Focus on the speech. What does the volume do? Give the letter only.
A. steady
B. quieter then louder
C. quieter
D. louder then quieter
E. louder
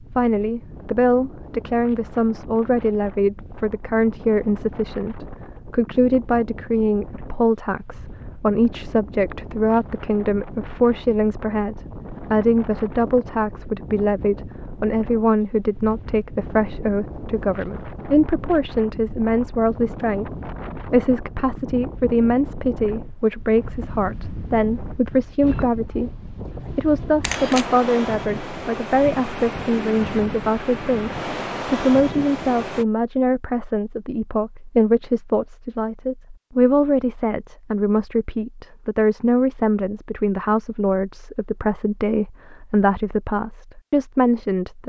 A.